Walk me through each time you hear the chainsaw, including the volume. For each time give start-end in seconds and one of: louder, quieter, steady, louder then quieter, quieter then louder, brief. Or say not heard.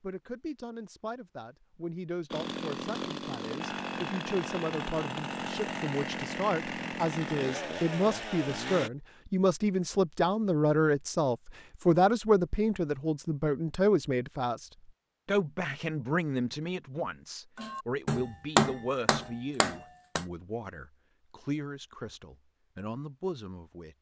2.3-8.9 steady.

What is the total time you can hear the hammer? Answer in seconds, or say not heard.
3 s.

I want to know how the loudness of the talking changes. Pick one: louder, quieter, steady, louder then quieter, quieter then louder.
louder then quieter.